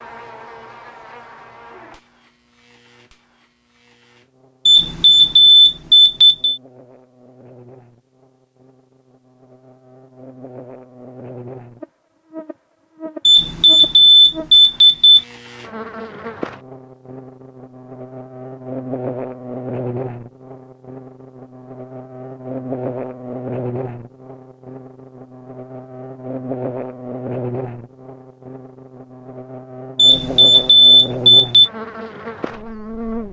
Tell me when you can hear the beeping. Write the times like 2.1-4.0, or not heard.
4.7-6.6, 13.2-15.2, 29.9-31.7.